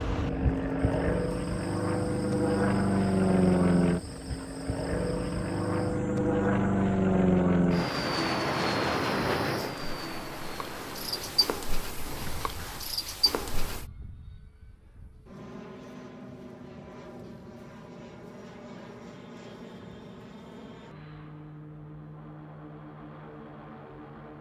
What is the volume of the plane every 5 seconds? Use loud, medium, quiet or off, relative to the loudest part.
loud, loud, quiet, quiet, quiet.